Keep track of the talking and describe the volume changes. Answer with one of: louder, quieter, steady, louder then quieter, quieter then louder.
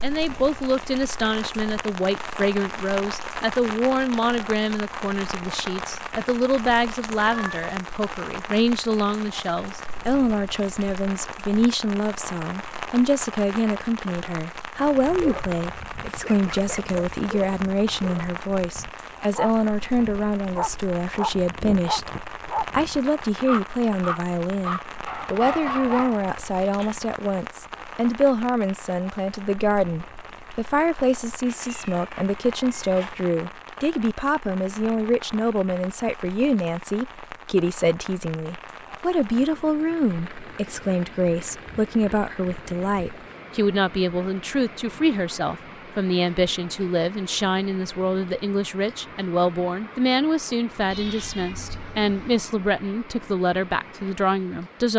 steady.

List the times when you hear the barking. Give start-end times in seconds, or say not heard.
14.8-27.0.